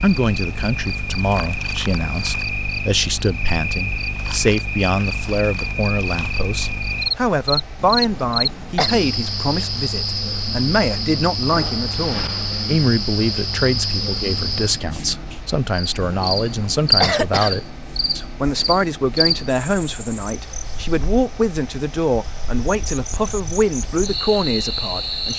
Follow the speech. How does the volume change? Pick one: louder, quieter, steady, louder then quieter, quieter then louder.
steady.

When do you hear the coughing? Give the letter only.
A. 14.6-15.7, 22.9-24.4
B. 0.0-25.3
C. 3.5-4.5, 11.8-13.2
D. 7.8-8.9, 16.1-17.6
D.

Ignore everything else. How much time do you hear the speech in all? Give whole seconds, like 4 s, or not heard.
25 s.